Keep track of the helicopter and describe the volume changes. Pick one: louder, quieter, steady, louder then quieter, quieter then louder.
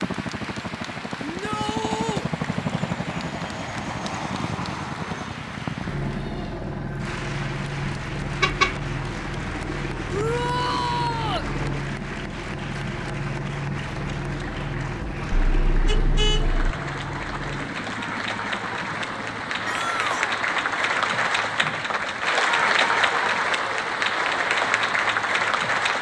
quieter.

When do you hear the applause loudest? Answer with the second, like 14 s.
23 s.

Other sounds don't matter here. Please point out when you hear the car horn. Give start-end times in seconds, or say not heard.
8.4-8.8, 15.3-16.7.